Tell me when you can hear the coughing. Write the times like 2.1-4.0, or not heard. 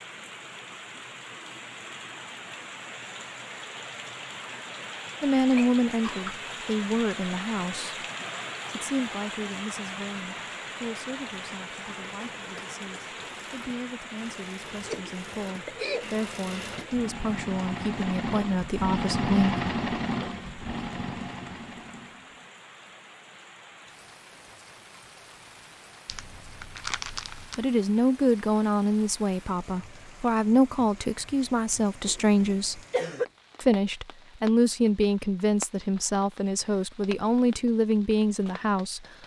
5.5-6.4, 14.7-16.1, 32.0-33.2.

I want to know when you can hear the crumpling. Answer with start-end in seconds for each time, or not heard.
26.1-27.6.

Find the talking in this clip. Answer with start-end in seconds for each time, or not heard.
5.2-8.0, 8.8-19.6, 27.6-32.8, 33.6-39.0.